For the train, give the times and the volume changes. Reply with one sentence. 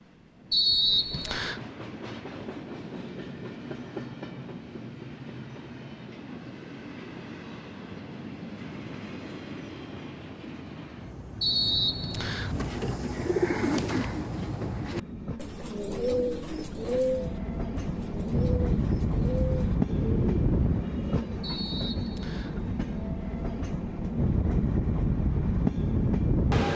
The train can be heard from 0.0 to 26.7 s, getting louder.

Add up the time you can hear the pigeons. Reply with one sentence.
You can hear the pigeons for 9 seconds altogether.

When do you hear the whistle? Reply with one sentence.
The whistle can be heard from 0.5 to 1.6 s, from 11.4 to 12.6 s and from 21.4 to 22.6 s.